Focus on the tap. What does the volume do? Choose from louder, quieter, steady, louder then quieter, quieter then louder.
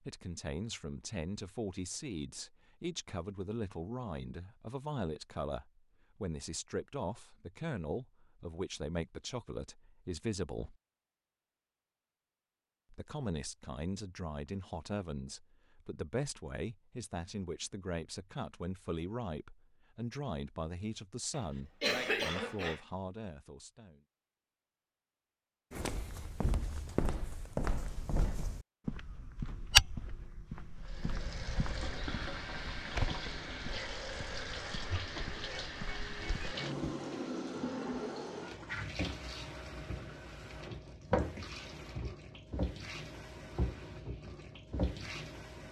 steady.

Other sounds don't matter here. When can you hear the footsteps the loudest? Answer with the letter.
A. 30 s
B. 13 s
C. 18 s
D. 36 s
A.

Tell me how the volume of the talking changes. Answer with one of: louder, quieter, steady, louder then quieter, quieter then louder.
steady.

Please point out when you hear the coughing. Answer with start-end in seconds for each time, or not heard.
21.3-22.8.